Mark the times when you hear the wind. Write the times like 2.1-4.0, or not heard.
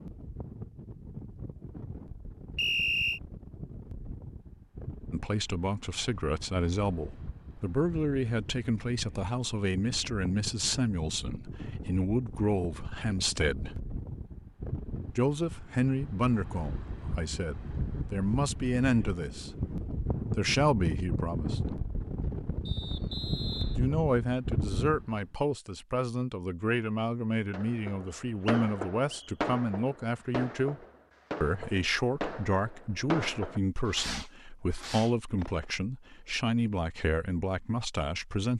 0.0-25.2.